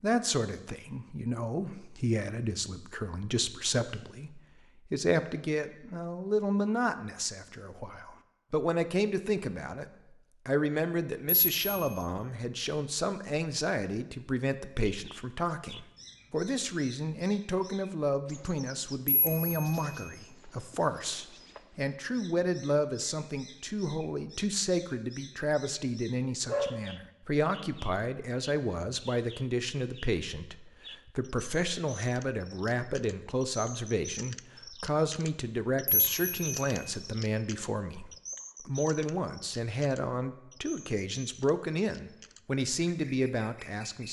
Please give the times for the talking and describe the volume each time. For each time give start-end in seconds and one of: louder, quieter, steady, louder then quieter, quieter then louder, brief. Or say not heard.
0.0-44.0 steady.